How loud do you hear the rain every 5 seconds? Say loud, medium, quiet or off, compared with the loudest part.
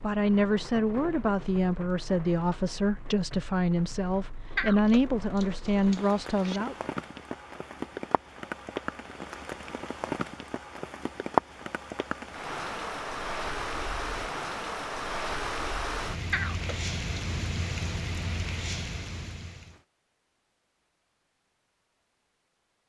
quiet, medium, loud, loud, off.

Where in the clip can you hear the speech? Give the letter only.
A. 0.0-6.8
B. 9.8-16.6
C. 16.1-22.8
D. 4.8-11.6
A.